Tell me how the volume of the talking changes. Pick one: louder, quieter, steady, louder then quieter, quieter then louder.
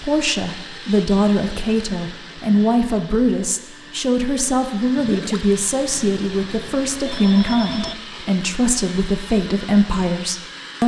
steady.